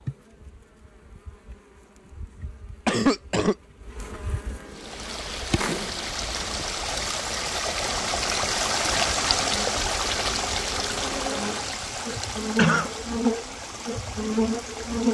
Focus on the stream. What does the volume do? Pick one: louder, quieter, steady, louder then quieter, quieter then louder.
louder then quieter.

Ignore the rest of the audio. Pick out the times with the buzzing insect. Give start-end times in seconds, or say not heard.
0.0-15.1.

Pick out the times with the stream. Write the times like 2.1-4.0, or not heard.
4.7-15.1.